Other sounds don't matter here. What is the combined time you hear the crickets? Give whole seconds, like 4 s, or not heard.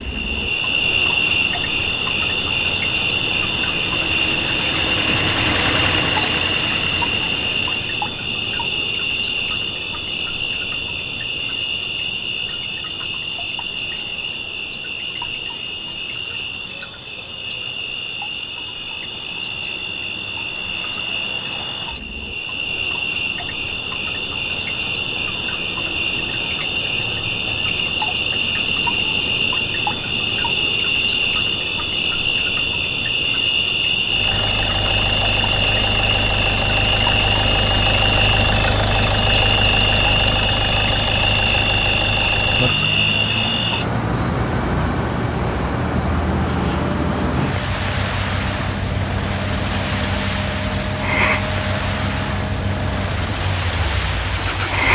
55 s.